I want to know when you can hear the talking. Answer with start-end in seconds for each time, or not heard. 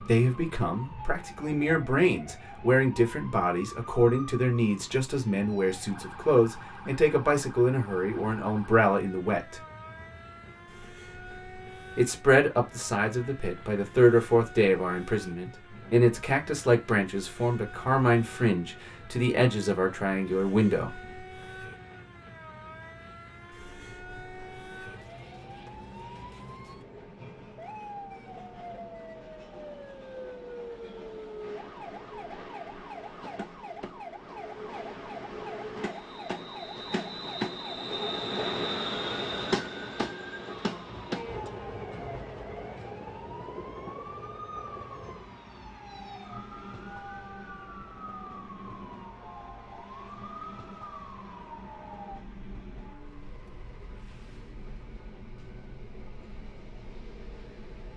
0.0-9.6, 11.9-20.9.